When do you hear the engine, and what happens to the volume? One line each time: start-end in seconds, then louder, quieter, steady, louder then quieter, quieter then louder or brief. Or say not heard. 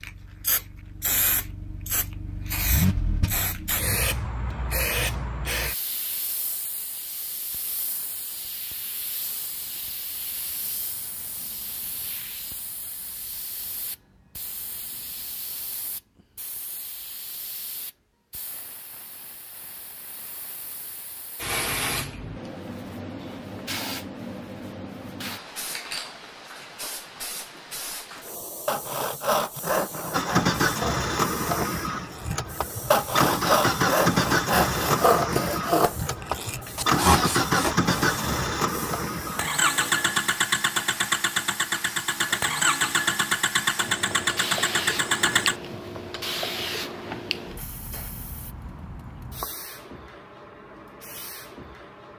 0.0-4.0 louder then quieter
30.1-45.6 steady.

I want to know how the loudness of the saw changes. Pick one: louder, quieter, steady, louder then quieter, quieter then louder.
quieter then louder.